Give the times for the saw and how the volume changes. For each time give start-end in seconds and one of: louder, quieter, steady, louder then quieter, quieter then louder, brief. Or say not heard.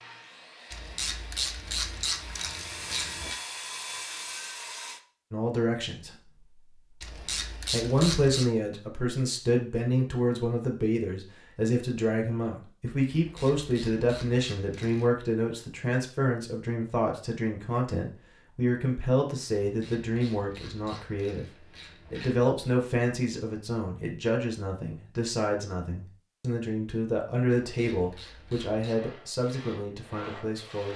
0.0-5.0 louder
28.9-30.9 brief.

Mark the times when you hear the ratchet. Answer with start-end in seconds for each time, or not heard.
0.7-3.4, 7.0-8.5, 13.1-15.1, 19.6-22.5, 27.6-29.0.